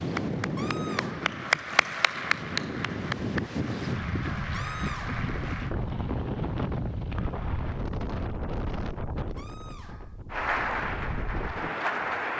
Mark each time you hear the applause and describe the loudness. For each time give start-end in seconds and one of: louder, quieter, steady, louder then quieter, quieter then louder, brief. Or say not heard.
0.0-5.8 louder then quieter
10.3-12.3 brief.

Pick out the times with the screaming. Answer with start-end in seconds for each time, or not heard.
0.6-1.3, 4.5-5.2, 9.3-10.2.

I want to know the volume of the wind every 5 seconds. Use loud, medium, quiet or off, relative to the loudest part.
loud, loud, medium.